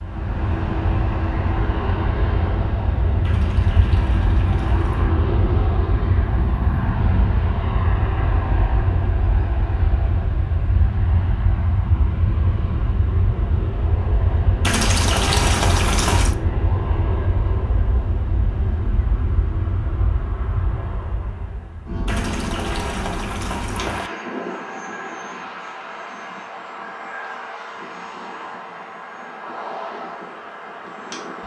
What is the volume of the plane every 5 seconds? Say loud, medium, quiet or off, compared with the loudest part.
loud, loud, loud, loud, medium, medium, medium.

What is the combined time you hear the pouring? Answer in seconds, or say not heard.
6 s.